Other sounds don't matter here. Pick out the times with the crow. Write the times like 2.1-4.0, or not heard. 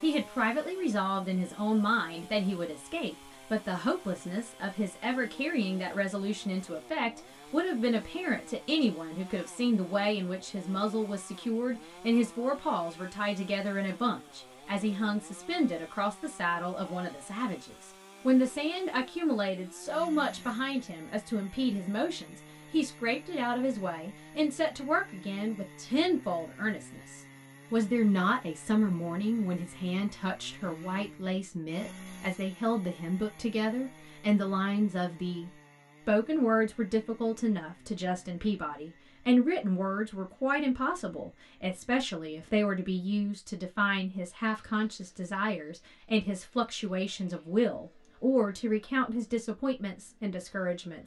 not heard.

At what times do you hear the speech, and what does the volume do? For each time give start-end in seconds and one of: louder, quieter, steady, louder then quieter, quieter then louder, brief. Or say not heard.
0.0-51.0 steady.